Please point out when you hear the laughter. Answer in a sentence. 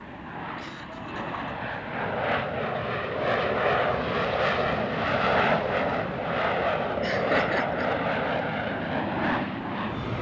You can hear the laughter from 0.6 to 1.6 s and from 7.0 to 7.9 s.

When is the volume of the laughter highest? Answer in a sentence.
The volume of the laughter peaks at 7 seconds.